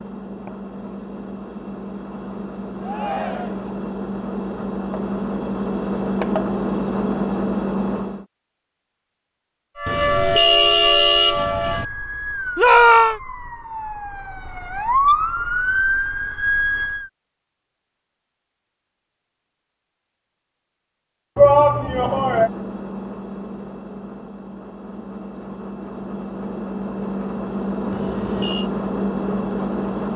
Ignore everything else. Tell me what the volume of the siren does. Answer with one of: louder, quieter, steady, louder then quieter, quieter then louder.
quieter then louder.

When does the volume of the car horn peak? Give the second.
11 s.